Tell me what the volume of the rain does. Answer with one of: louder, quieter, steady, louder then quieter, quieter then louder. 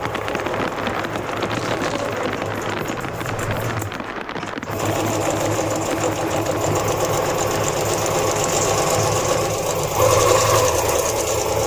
quieter.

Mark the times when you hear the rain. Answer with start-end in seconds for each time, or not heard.
0.0-9.5.